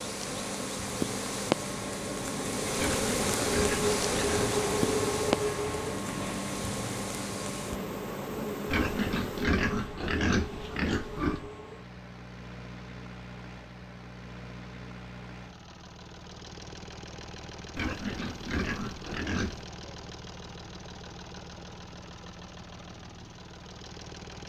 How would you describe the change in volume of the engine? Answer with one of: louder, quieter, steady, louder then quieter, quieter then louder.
quieter.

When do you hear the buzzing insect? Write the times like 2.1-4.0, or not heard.
0.0-9.4.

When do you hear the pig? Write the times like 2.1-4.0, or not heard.
2.8-4.5, 8.7-11.5, 17.8-19.6.